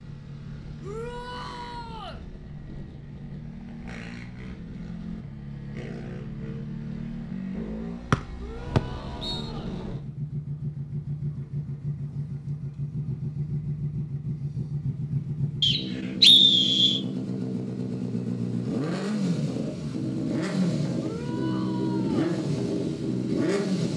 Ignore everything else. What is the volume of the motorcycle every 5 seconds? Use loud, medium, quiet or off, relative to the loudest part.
quiet, medium, medium, loud, loud.